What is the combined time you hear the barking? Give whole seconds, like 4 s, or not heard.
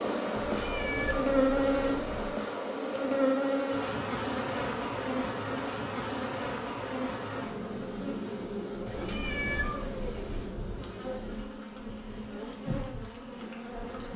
not heard.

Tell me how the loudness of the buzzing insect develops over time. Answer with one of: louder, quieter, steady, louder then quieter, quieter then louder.
quieter.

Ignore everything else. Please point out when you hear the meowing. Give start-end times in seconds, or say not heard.
0.3-2.4, 8.8-10.6.